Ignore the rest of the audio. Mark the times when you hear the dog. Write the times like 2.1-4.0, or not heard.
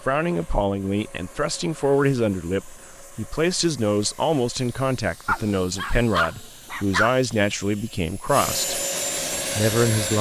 5.2-7.1.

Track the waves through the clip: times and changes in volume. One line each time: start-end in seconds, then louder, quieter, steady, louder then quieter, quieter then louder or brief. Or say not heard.
not heard.